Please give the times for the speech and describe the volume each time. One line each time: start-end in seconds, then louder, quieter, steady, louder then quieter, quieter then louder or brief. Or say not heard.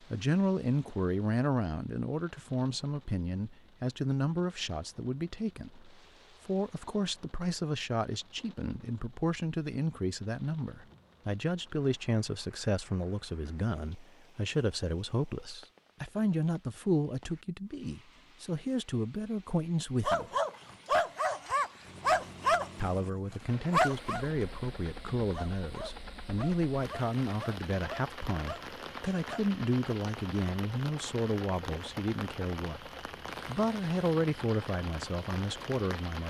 0.1-20.3 steady
22.8-32.9 steady
33.5-36.2 brief.